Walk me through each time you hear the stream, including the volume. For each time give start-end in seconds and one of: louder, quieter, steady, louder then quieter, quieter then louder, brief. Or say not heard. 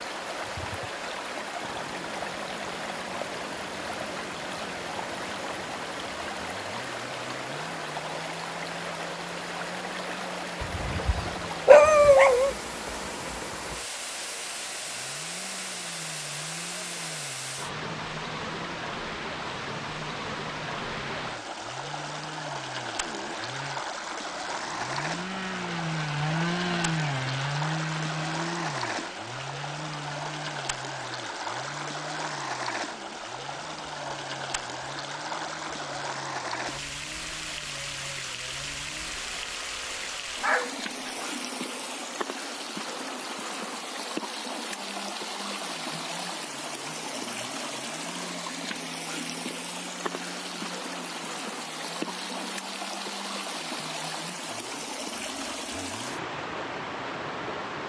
0.0-57.8 steady.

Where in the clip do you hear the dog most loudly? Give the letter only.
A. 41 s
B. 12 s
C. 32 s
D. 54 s
B.